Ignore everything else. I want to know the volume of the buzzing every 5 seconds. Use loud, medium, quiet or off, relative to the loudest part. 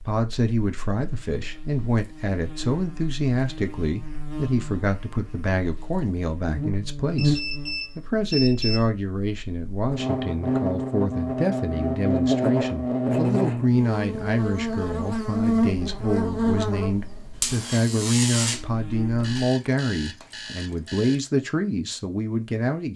quiet, medium, loud, loud, off.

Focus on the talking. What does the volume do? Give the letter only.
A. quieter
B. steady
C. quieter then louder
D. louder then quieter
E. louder
B.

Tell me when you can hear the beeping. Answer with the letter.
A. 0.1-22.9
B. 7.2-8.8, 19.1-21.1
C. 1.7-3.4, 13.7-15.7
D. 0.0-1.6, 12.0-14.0
B.